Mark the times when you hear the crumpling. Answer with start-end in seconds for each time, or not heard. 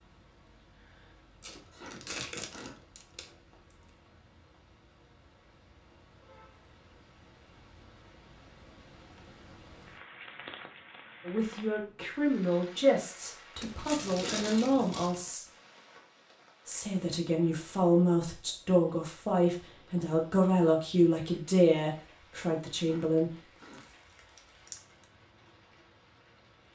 1.4-3.4, 13.6-15.2, 23.7-25.1.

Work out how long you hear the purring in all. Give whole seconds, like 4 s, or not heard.
not heard.